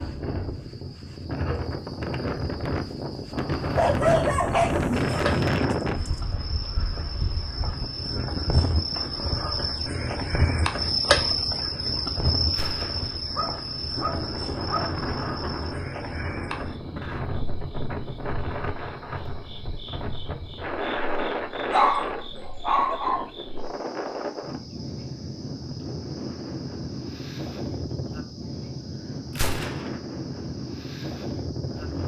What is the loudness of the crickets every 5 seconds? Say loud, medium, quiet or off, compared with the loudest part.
medium, medium, loud, quiet, quiet, quiet, quiet.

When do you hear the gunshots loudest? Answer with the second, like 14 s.
30 s.